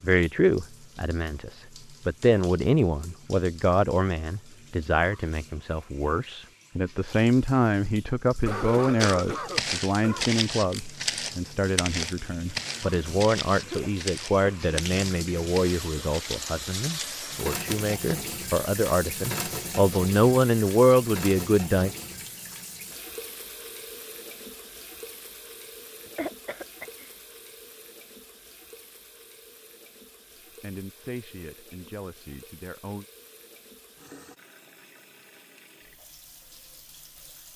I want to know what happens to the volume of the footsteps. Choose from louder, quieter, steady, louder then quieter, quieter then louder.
quieter.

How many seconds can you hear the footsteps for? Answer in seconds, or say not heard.
9 s.